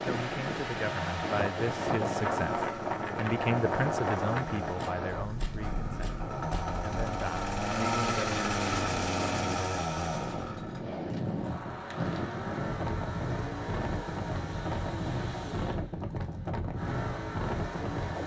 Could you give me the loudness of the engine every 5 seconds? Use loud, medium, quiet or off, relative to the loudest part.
medium, loud, medium, medium.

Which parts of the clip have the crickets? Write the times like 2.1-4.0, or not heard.
not heard.